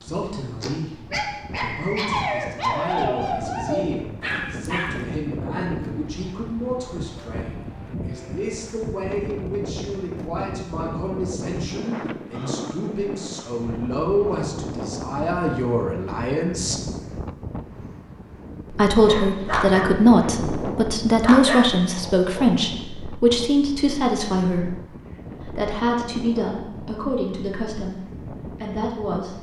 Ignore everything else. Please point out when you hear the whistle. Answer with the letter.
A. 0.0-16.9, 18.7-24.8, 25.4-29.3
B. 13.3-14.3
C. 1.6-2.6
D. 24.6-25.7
C.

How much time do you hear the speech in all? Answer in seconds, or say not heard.
27 s.